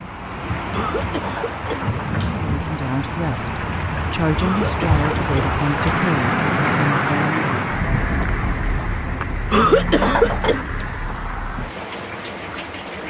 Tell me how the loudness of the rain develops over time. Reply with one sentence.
The volume of the rain goes up, then down.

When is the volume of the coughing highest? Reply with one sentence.
The loudest moment of the coughing is at 10 seconds.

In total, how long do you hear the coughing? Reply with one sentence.
The coughing can be heard for 5 seconds in total.